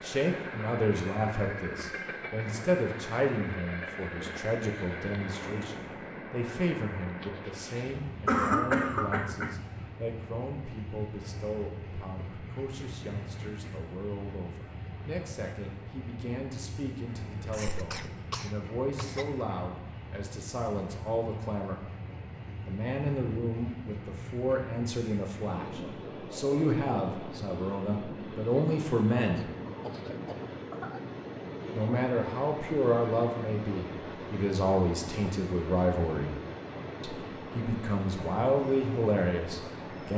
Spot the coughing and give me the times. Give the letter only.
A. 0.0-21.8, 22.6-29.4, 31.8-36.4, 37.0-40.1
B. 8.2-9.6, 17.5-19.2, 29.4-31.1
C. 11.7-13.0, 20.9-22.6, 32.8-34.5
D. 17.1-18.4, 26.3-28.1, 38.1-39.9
B.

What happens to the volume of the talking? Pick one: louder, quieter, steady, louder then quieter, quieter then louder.
quieter then louder.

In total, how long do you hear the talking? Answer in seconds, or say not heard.
36 s.